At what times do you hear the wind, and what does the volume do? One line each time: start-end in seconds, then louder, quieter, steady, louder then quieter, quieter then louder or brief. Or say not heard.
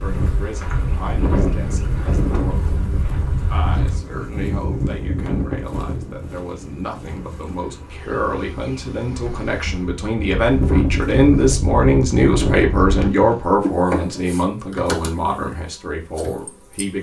0.0-13.1 quieter then louder.